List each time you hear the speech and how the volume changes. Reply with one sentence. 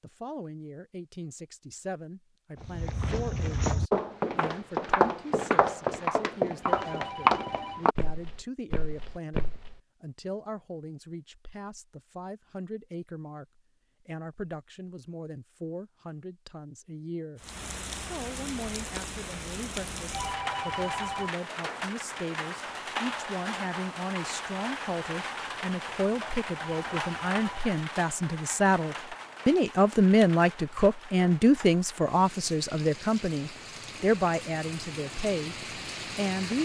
The speech can be heard from 0.0 to 17.4 s, at a steady volume; and from 18.0 to 36.5 s, getting louder then quieter.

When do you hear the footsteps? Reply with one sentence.
You can hear the footsteps from 2.6 to 9.8 s.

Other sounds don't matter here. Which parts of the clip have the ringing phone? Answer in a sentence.
The ringing phone can be heard from 6.6 to 7.9 s, from 20.1 to 21.3 s and from 26.6 to 27.6 s.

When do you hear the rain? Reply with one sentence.
The rain can be heard from 17.4 to 36.5 s.